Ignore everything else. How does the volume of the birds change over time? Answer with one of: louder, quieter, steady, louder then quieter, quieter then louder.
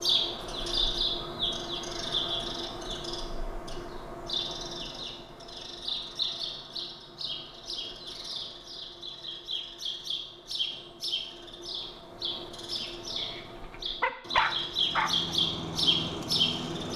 quieter then louder.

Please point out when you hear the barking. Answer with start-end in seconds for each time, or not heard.
13.2-15.3.